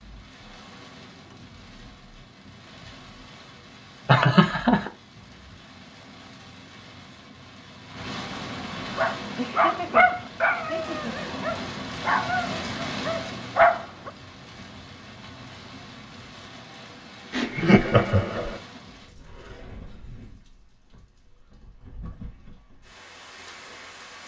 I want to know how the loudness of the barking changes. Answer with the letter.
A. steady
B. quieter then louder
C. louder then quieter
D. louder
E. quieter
B.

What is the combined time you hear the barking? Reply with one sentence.
The barking can be heard for 5 seconds in total.